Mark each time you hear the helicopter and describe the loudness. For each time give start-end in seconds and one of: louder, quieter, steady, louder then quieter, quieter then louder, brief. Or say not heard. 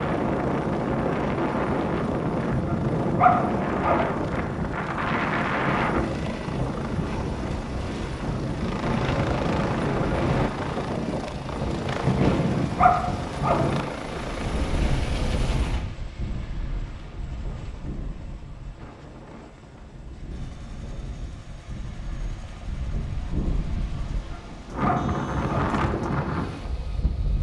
0.0-27.3 quieter.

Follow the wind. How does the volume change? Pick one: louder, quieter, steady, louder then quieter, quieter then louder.
quieter then louder.